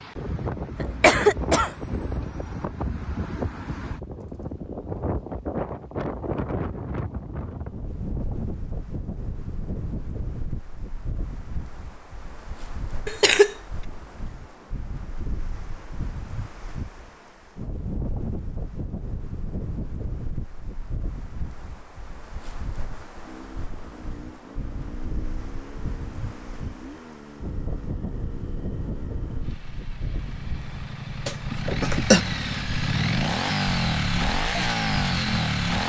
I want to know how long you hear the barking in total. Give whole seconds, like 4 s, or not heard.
not heard.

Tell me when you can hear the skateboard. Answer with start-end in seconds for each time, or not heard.
not heard.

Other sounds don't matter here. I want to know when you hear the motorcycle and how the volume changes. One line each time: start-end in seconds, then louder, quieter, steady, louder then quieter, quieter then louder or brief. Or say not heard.
23.2-35.8 louder.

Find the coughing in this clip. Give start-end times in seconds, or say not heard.
0.8-1.8, 13.1-13.6, 31.2-32.2.